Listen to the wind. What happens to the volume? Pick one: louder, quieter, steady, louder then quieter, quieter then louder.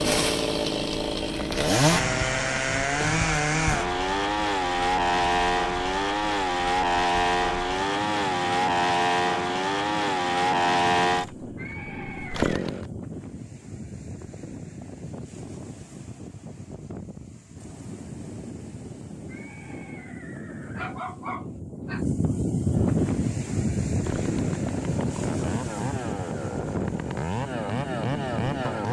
louder.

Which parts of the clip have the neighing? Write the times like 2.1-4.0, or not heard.
11.6-12.6, 19.2-20.9.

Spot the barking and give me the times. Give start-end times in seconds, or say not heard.
20.8-22.1.